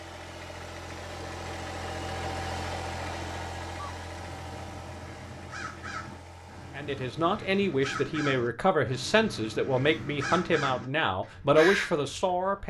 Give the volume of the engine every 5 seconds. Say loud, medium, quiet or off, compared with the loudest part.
loud, medium, off.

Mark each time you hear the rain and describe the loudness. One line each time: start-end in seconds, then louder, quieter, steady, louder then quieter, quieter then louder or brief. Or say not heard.
not heard.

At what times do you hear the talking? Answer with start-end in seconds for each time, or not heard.
6.8-12.6.